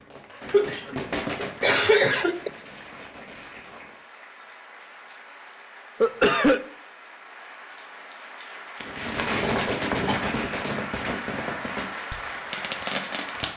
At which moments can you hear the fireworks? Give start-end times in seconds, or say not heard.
0.0-4.0, 8.8-13.5.